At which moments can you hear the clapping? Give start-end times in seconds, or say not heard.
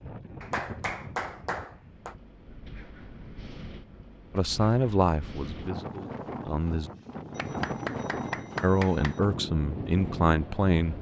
0.4-2.1, 7.3-9.2.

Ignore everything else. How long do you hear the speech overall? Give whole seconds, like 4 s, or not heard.
5 s.